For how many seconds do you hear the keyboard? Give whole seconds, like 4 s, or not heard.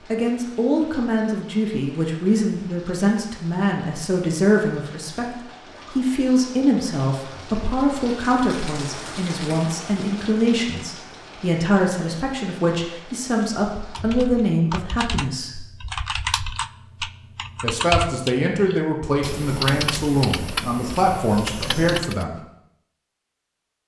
8 s.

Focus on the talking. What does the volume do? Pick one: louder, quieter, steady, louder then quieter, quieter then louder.
steady.